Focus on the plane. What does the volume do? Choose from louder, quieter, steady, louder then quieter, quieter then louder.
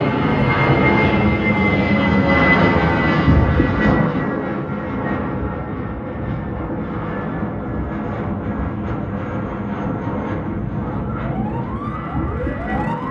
quieter.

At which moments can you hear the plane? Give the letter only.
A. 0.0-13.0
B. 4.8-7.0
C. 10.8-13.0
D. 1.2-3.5
A.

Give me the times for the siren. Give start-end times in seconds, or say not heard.
10.8-13.0.